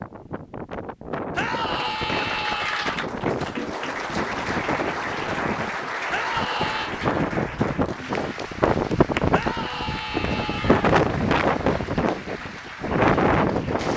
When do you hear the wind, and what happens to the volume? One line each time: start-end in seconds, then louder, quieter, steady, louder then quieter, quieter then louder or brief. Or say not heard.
0.0-13.9 louder.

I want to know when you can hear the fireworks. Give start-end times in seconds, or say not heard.
not heard.